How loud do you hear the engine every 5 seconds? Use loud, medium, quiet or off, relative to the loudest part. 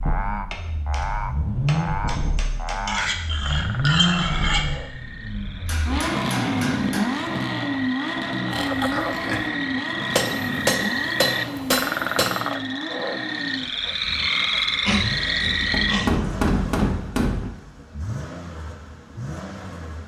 loud, loud, medium, medium.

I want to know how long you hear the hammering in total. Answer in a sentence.
You can hear the hammering for 8 seconds altogether.